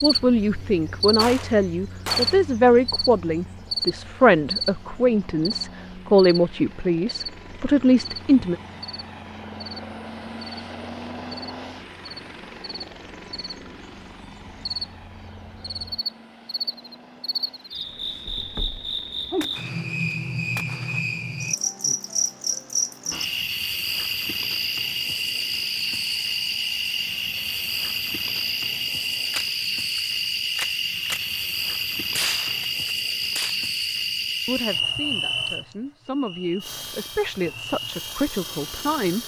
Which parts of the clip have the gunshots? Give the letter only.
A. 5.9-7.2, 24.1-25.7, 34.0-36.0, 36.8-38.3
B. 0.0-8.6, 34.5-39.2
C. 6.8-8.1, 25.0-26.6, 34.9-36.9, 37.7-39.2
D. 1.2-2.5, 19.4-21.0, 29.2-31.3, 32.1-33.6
D.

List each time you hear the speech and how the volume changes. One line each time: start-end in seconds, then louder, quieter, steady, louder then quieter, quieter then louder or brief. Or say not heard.
0.0-8.6 steady
34.5-39.2 louder.